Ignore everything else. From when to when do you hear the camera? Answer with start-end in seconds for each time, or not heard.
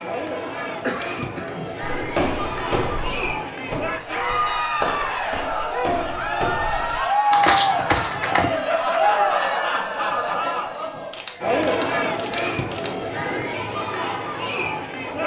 11.1-12.9.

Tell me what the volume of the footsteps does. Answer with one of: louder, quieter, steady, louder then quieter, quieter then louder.
quieter then louder.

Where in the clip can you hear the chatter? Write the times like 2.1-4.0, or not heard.
0.0-15.2.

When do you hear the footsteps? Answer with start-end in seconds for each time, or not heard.
1.9-8.5.